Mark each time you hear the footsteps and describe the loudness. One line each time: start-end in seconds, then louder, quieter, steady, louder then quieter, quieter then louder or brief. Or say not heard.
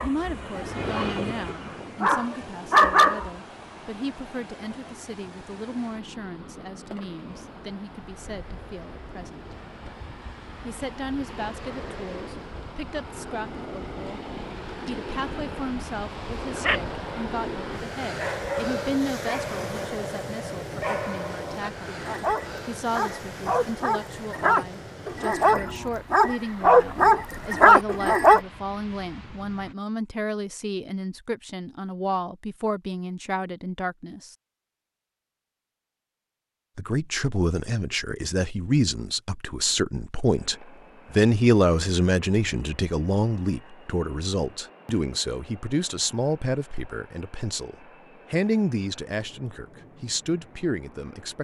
not heard.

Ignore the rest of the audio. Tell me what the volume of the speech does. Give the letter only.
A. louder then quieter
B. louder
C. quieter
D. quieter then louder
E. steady
B.